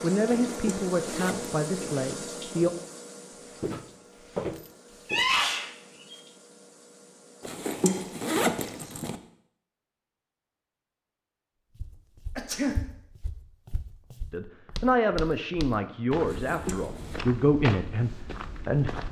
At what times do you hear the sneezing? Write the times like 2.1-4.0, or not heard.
5.0-6.2, 12.3-12.8.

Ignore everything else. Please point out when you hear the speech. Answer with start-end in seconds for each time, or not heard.
0.0-2.7, 14.3-19.0.